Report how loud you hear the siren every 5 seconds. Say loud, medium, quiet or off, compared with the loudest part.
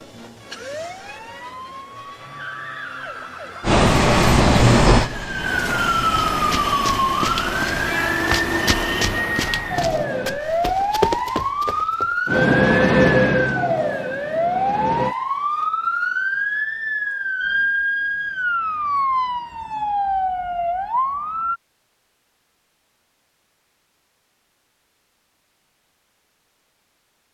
quiet, loud, loud, loud, loud, off.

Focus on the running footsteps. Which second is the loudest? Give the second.
11 s.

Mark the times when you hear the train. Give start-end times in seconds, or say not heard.
3.6-10.4, 12.2-15.2.